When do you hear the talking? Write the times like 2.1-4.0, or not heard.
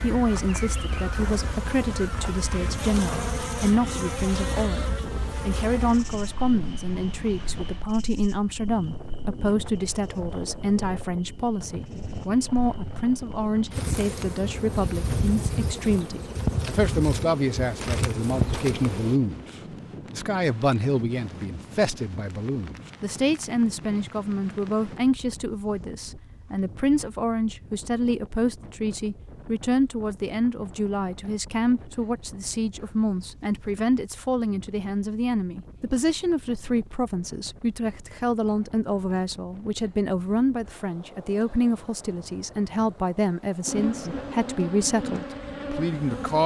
0.0-19.4, 20.1-46.4.